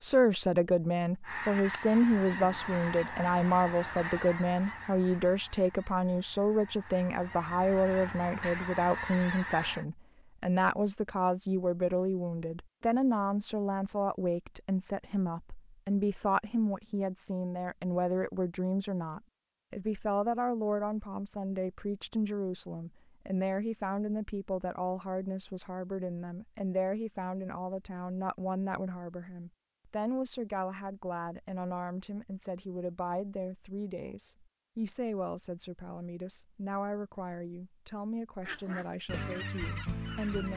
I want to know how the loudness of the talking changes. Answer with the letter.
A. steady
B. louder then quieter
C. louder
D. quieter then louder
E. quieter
E.